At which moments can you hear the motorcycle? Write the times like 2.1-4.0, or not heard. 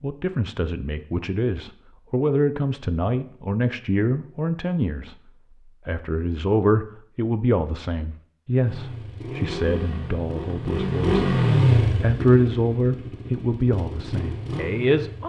8.7-15.2.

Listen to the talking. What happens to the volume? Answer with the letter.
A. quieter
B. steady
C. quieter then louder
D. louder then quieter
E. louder
B.